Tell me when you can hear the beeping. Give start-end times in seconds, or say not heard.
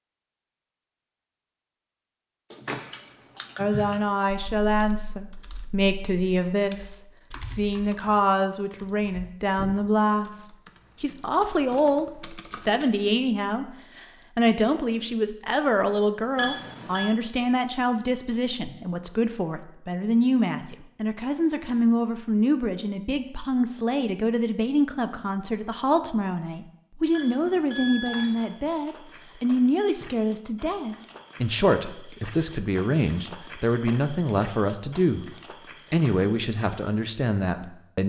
16.4-17.1, 27.1-28.4.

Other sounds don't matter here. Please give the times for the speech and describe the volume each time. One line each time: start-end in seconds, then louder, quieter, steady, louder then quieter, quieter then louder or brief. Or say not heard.
3.5-35.2 steady
35.9-38.0 brief.